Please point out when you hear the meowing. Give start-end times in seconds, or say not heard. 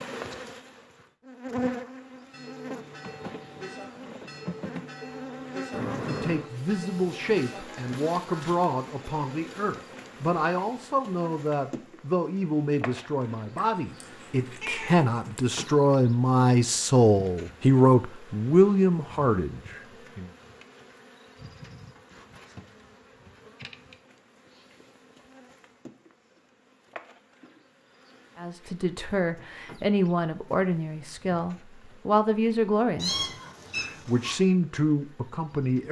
5.7-6.5, 13.6-15.4, 33.0-34.3.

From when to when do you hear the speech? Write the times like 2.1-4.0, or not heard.
6.0-20.3, 28.4-35.8.